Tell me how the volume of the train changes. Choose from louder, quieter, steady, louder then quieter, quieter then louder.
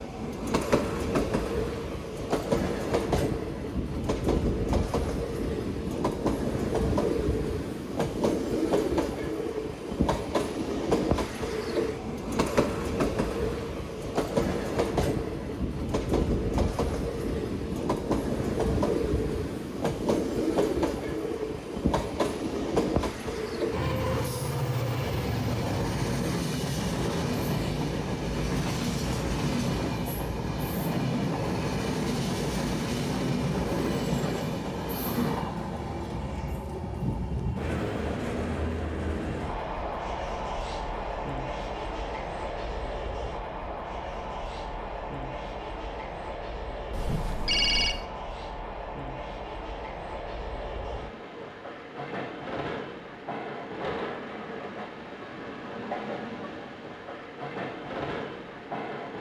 quieter.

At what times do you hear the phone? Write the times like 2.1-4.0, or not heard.
46.9-48.0.